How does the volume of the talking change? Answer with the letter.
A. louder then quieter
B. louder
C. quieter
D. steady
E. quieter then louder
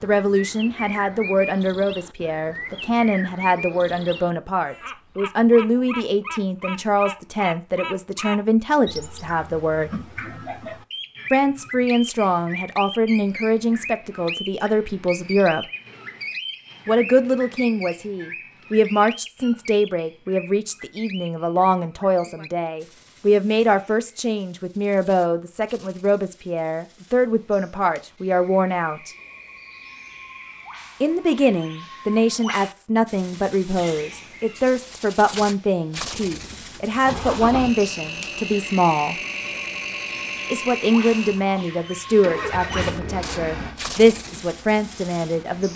D.